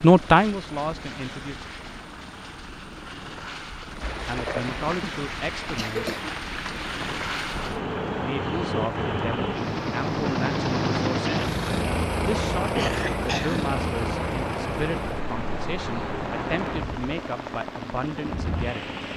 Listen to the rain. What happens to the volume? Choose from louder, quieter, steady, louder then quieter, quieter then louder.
steady.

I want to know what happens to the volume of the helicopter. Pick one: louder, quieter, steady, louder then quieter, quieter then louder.
louder then quieter.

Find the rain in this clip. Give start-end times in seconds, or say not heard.
4.0-19.1.